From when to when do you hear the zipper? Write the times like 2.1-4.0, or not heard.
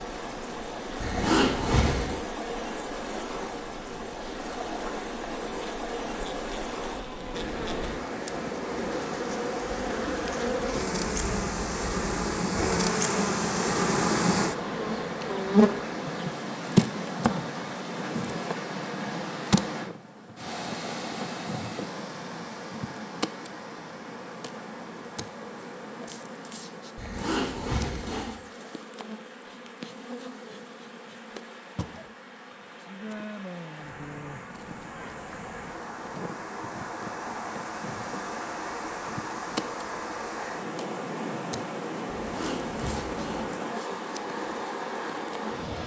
1.0-2.1, 26.9-28.4, 42.1-43.5.